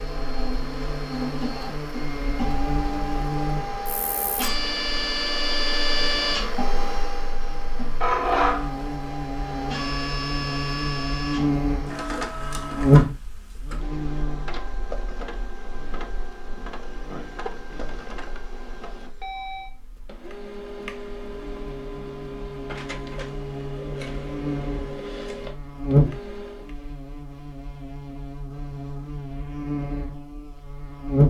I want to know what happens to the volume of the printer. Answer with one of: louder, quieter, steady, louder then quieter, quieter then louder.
quieter.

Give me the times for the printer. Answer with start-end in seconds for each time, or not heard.
0.0-26.8.